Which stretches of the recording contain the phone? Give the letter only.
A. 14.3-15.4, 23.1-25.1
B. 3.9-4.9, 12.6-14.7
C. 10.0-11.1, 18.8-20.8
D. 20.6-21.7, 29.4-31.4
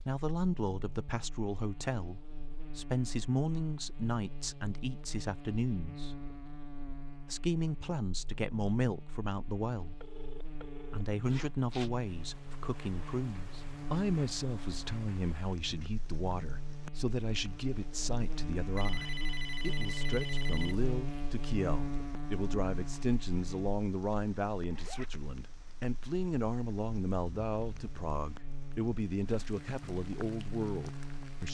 C.